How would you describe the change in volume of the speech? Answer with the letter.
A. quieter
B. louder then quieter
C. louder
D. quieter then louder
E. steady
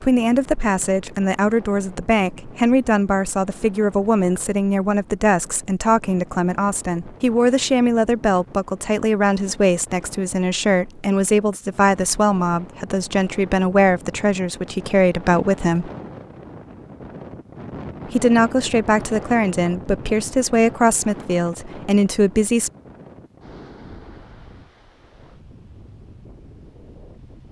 E.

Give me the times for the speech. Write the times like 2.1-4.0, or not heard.
0.0-15.9, 18.1-22.7.